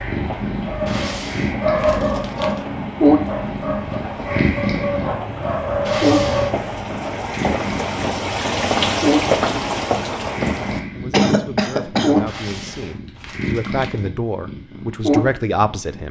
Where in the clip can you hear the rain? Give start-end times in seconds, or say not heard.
0.0-10.8.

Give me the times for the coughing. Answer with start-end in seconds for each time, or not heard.
11.1-12.2.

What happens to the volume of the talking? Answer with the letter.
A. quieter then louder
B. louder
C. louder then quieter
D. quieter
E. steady
B.